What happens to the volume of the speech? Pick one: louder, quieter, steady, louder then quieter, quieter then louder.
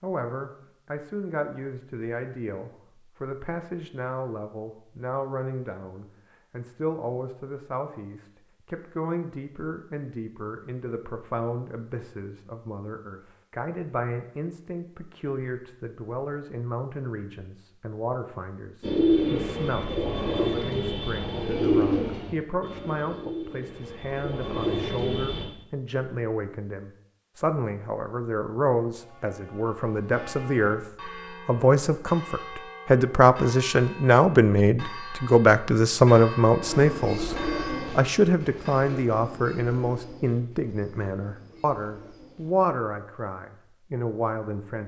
louder.